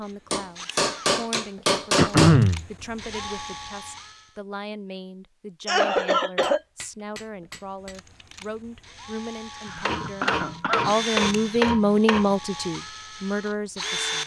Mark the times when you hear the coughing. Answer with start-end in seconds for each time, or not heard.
1.9-2.6, 5.7-6.6, 9.6-10.9.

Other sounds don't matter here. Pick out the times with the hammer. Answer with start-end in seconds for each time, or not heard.
0.3-2.5, 6.4-8.0, 9.7-12.3.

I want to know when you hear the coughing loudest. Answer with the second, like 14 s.
2 s.